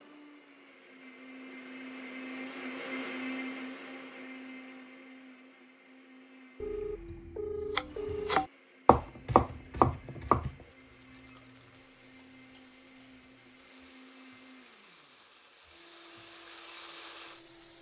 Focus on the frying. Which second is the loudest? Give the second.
17 s.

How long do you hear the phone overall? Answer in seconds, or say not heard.
2 s.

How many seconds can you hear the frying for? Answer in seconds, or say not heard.
7 s.